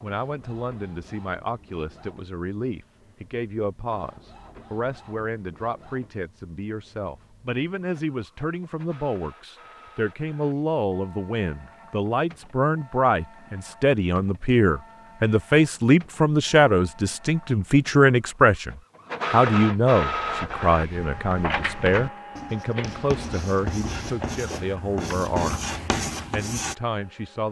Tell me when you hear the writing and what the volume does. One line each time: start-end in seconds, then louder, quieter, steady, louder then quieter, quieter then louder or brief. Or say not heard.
20.2-26.8 louder.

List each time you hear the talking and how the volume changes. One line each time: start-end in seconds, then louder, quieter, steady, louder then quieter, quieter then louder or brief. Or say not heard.
0.0-25.6 louder then quieter
26.3-27.4 brief.